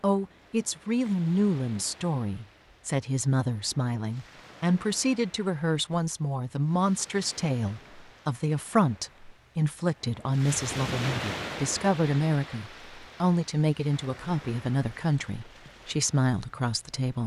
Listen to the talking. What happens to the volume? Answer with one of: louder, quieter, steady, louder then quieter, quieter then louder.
steady.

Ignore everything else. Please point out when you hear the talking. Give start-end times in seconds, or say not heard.
0.0-17.2.